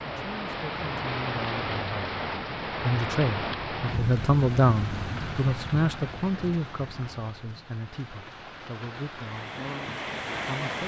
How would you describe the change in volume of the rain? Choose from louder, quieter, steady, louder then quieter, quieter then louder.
quieter then louder.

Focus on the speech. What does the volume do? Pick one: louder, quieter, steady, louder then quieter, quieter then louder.
louder then quieter.